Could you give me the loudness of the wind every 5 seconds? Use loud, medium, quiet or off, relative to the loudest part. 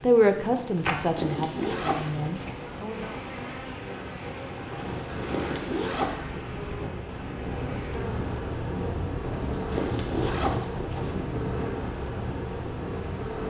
medium, loud, loud.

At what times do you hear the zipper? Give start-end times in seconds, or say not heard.
0.8-2.4, 5.1-6.2, 9.3-11.2.